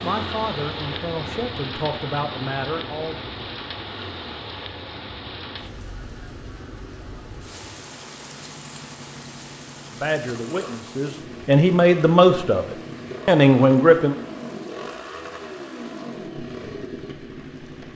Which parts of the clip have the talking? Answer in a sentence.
The talking can be heard from 0.0 to 3.2 s and from 9.9 to 14.2 s.